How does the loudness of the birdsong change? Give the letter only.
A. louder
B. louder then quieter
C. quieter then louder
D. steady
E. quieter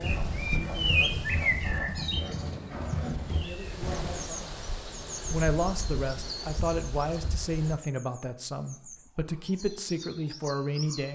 C.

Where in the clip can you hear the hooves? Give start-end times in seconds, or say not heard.
0.0-4.2.